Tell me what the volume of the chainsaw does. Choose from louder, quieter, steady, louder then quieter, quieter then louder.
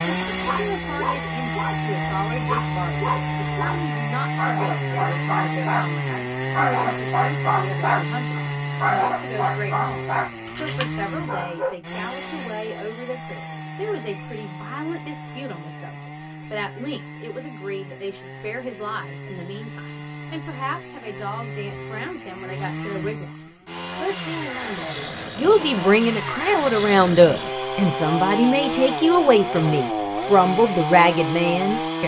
quieter then louder.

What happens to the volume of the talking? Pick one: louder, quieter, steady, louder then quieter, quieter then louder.
louder.